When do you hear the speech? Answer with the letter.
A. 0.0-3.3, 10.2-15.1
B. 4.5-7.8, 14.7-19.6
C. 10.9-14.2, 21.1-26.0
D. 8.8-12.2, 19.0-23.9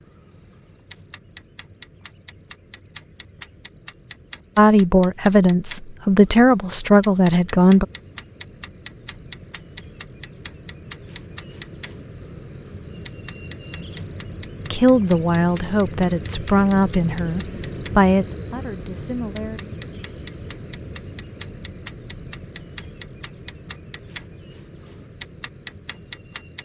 B.